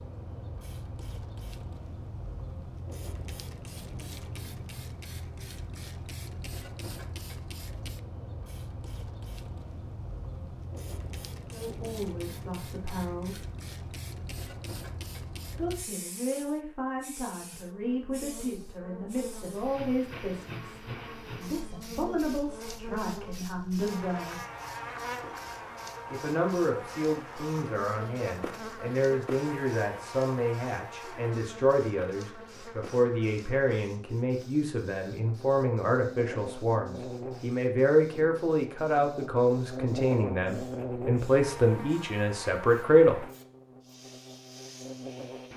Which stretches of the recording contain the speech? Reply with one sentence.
You can hear the speech from 11.5 to 13.4 s, from 15.6 to 24.4 s and from 26.1 to 43.2 s.